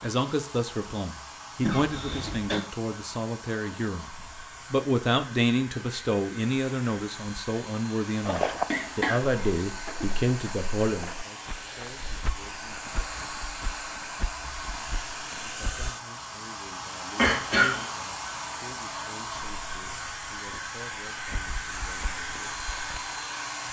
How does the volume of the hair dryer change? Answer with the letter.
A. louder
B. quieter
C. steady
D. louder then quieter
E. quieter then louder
A.